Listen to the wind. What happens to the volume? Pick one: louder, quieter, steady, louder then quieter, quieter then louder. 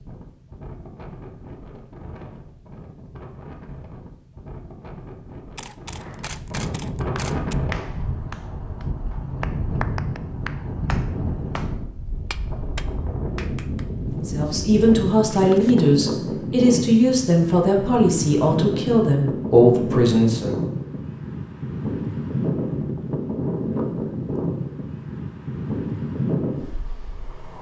louder.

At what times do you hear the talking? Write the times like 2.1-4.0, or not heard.
14.2-20.6.